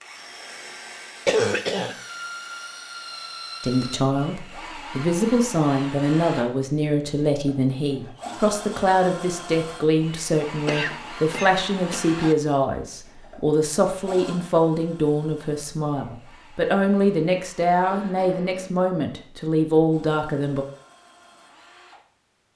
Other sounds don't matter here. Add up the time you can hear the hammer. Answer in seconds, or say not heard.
not heard.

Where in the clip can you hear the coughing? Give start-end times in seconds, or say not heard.
1.2-1.9, 10.7-12.3, 17.8-18.8.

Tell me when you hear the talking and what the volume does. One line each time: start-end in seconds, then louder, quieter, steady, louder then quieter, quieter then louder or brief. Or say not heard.
3.6-20.6 steady.